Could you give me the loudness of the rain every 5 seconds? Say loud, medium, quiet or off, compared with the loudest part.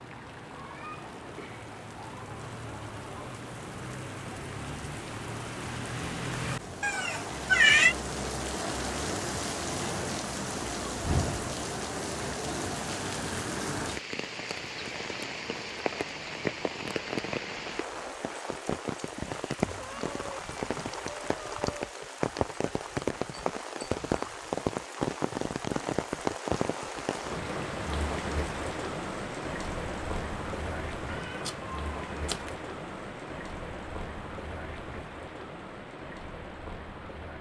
medium, loud, loud, loud, loud, loud, medium, medium.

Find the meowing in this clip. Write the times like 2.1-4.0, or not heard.
6.8-8.0, 19.6-21.9, 31.1-32.5.